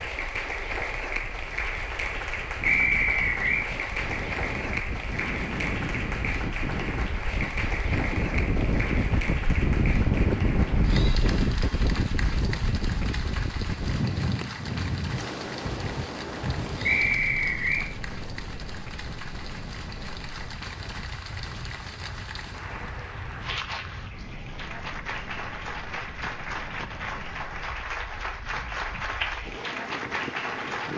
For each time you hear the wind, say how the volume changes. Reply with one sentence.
The wind can be heard from 0.0 to 30.9 s, getting louder then quieter.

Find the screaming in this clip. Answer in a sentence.
The screaming can't be heard in this clip.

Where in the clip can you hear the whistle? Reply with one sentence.
You can hear the whistle from 2.6 to 3.6 s and from 16.9 to 17.9 s.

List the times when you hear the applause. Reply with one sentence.
You can hear the applause from 0.0 to 30.9 s.